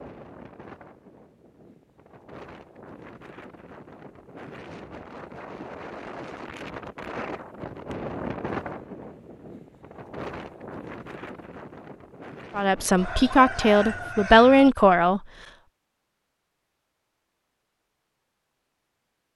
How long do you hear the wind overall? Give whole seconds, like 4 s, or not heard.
14 s.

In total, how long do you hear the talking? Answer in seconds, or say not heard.
3 s.